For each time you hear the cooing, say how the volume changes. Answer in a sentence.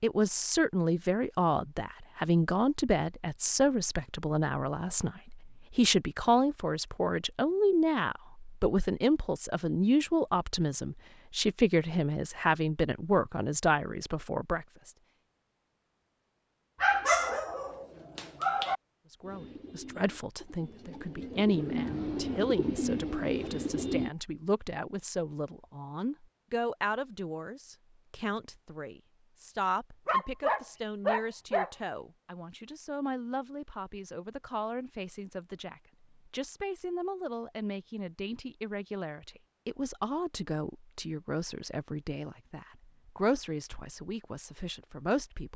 The cooing can be heard from 19.2 to 24.1 s, getting louder.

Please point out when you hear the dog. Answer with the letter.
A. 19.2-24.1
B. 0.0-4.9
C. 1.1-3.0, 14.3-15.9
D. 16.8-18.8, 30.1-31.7
D.